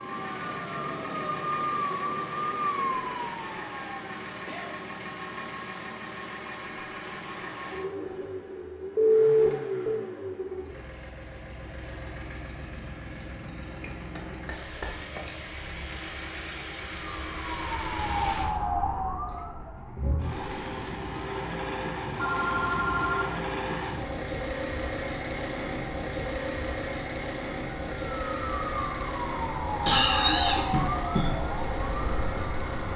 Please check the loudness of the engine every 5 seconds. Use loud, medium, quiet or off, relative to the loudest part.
medium, loud, medium, medium, loud, loud, loud.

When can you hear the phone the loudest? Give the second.
9 s.